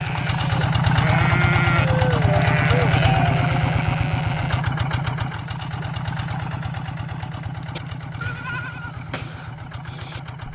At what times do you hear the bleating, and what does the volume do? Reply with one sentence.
The bleating can be heard from 0.0 to 4.7 s, getting louder then quieter; and briefly from 7.8 to 10.2 s.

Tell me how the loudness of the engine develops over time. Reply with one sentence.
The volume of the engine goes down.